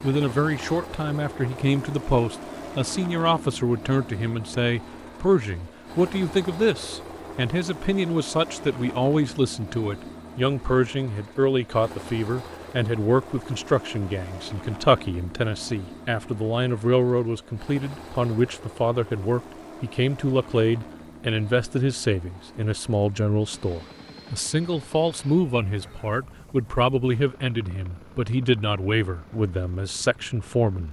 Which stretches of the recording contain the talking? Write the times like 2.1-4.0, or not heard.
0.0-30.8.